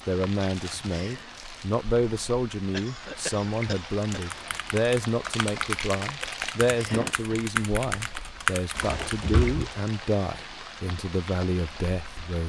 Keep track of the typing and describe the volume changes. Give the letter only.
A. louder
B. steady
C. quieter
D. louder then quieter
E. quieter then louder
A.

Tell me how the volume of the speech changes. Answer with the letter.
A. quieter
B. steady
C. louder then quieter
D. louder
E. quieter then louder
B.